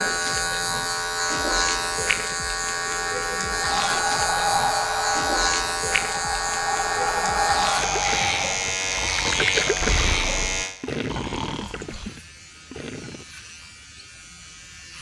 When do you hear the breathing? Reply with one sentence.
The breathing can be heard from 3.5 to 12.1 s.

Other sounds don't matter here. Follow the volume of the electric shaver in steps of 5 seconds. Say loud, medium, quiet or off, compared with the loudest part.
loud, loud, medium.